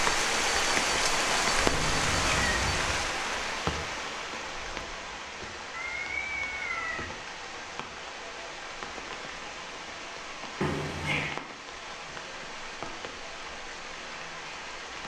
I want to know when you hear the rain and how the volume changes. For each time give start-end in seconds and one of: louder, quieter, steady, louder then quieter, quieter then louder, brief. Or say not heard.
0.0-15.0 quieter.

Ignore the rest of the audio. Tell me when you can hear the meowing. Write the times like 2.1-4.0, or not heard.
1.7-3.0, 5.7-7.0, 10.6-11.3.